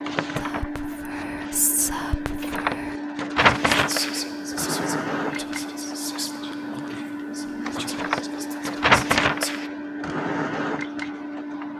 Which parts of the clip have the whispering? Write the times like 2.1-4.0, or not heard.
0.3-9.7.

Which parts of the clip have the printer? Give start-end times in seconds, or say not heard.
0.0-11.7.